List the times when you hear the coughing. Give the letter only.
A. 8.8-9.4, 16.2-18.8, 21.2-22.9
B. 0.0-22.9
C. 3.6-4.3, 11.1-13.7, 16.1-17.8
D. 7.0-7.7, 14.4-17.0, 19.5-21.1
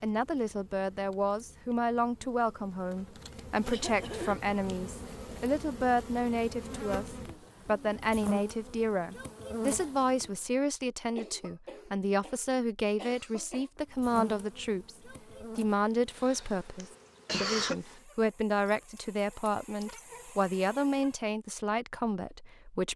C.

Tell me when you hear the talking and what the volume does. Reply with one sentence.
The talking can be heard from 0.0 to 22.9 s, at a steady volume.